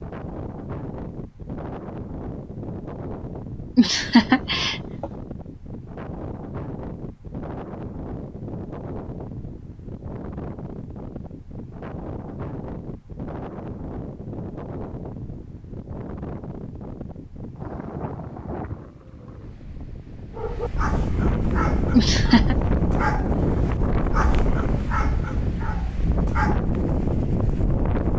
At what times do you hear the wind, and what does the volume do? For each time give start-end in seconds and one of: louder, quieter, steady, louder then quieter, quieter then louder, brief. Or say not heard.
0.0-28.1 louder.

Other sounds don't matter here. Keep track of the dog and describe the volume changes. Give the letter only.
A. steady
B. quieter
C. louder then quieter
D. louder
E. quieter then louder
A.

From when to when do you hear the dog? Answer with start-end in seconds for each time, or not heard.
20.4-26.9.